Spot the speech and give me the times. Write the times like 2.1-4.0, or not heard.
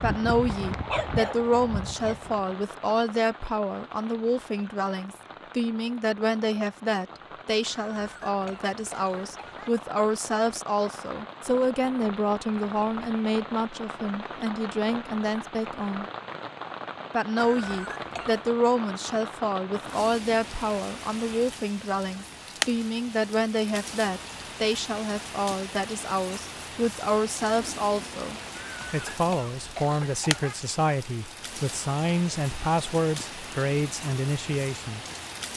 0.0-16.1, 17.1-35.0.